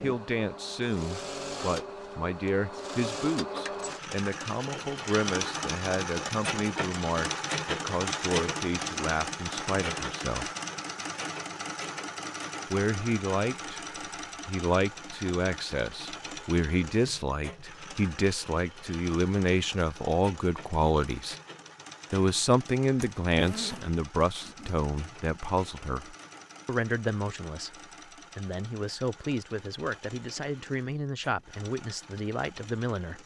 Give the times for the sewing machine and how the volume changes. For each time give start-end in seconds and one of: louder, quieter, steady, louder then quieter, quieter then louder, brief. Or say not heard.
0.0-33.2 quieter.